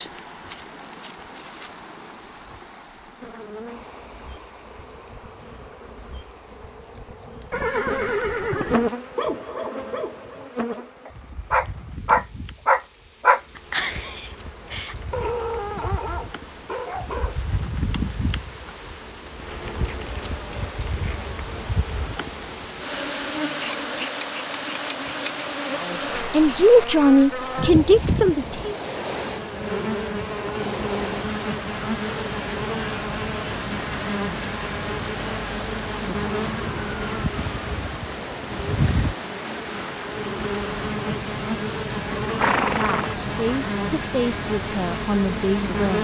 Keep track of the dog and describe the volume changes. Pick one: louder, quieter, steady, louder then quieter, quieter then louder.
louder then quieter.